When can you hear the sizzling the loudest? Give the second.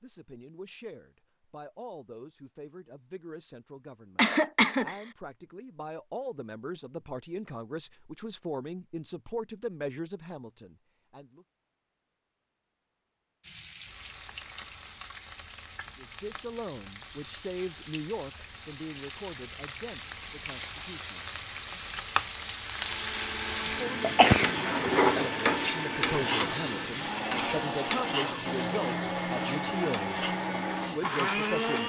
25 s.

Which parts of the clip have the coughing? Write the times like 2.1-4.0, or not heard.
4.2-5.0, 24.0-25.2.